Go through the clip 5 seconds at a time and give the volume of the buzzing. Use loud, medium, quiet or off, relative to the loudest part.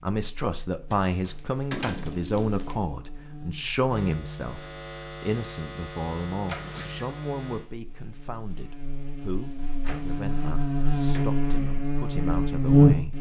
quiet, quiet, loud.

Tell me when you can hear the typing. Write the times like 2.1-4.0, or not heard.
not heard.